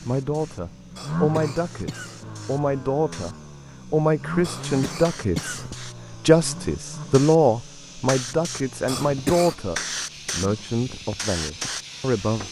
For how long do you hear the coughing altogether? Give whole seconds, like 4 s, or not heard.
4 s.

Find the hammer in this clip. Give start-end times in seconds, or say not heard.
not heard.